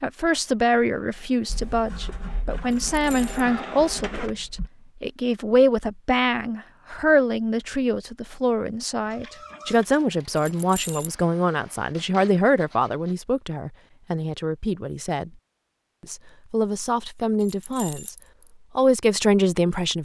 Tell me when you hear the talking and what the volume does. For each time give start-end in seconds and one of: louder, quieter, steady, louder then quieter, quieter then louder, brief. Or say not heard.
0.0-15.3 steady
16.1-18.1 brief
18.8-20.0 brief.